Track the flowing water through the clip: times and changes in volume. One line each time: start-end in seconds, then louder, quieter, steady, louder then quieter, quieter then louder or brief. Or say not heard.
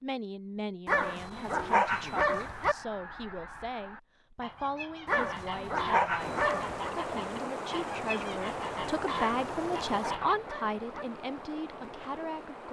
6.2-12.6 quieter.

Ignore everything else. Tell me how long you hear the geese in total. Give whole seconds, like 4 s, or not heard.
8 s.